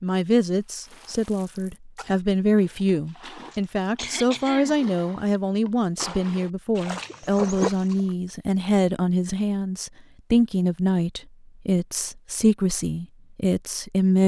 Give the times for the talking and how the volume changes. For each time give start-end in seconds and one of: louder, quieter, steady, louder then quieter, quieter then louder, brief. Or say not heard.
0.0-14.2 steady.